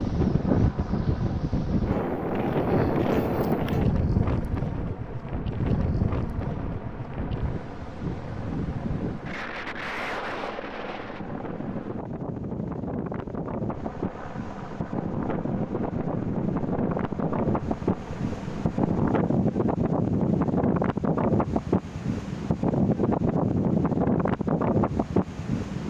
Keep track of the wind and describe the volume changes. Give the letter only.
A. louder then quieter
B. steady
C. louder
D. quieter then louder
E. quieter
D.